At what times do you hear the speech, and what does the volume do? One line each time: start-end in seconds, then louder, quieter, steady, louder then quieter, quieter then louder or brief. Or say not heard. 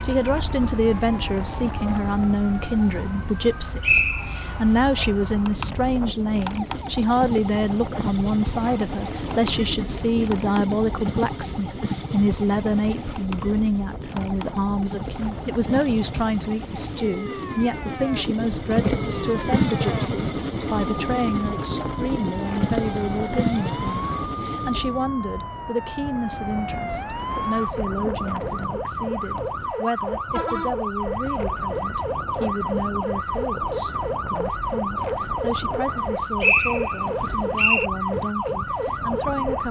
0.1-39.6 quieter.